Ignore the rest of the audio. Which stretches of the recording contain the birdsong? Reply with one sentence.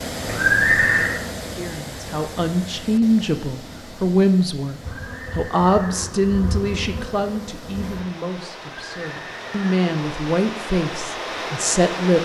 You can't hear the birdsong here.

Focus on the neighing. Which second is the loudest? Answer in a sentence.
The volume of the neighing peaks at 1 second.